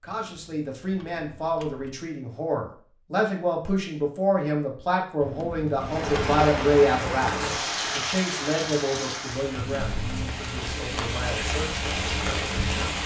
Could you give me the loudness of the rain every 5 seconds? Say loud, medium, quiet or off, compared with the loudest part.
off, loud, loud.